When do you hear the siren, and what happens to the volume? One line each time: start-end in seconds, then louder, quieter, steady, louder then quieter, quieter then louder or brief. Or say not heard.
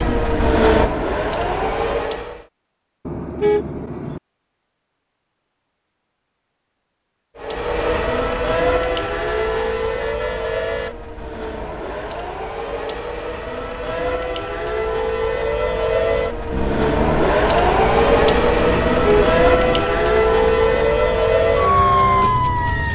0.0-2.5 brief
7.3-22.9 quieter then louder.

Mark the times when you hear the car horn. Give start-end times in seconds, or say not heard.
3.0-4.2, 8.7-10.9, 18.9-19.9.